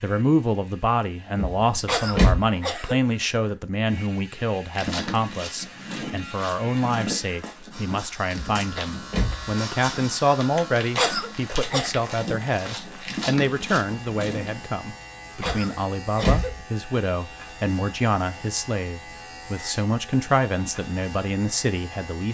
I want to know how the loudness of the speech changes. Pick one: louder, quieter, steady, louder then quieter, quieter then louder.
steady.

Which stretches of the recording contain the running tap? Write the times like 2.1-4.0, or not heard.
not heard.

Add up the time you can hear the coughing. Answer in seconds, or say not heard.
3 s.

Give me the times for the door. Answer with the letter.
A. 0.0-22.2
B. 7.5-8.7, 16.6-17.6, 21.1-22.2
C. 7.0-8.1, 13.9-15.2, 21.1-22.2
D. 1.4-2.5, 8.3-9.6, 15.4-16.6
D.